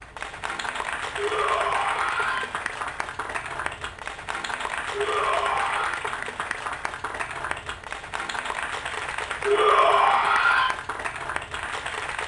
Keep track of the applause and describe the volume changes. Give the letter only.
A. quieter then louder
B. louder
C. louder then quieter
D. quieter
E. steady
E.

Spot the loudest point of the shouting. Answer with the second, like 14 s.
10 s.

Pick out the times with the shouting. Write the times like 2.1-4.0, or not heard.
1.1-2.5, 4.9-6.0, 9.4-10.7.